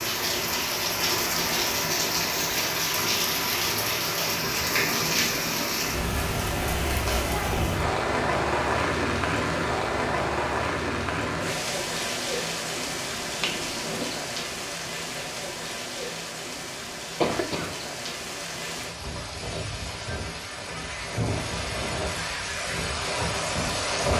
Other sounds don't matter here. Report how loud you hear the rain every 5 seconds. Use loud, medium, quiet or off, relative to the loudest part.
loud, loud, loud, medium, loud.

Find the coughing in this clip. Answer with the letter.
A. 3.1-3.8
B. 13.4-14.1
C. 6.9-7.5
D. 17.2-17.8
D.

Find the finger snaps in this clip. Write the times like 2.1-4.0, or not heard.
13.4-14.1.